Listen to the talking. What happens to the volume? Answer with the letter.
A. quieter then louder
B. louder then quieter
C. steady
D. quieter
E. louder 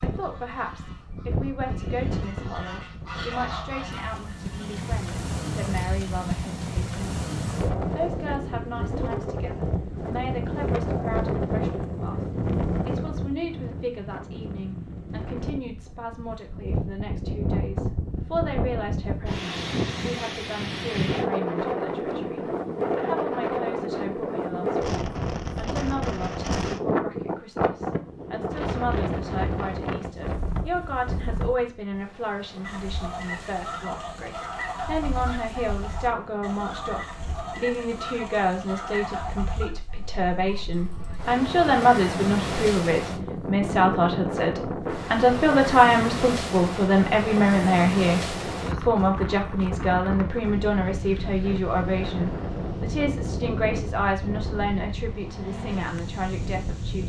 E.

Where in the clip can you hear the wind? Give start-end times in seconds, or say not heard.
0.0-57.0.